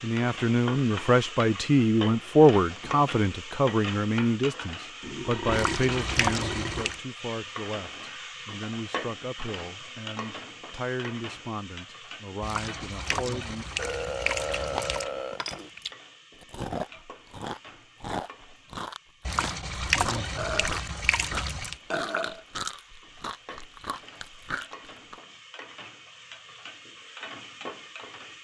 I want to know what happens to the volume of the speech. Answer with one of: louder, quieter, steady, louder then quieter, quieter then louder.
quieter.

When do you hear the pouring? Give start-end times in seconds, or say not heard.
5.5-7.0, 12.4-15.1, 19.2-21.8.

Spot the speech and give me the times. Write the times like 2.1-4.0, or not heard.
0.0-13.7.